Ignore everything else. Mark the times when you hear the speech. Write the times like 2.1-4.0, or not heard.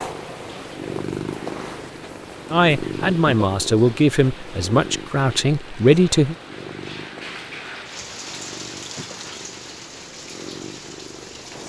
2.5-6.3.